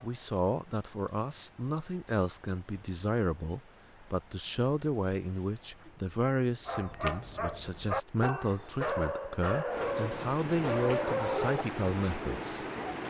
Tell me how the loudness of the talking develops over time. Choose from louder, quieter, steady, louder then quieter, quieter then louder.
steady.